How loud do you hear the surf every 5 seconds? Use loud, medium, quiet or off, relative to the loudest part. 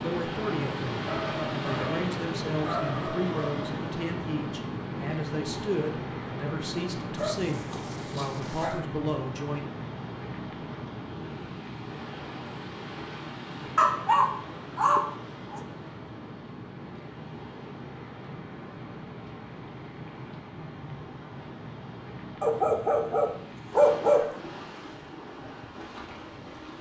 loud, loud, medium, medium, medium, medium.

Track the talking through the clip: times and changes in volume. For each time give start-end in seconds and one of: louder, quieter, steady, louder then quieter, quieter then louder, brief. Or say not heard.
0.0-9.7 steady.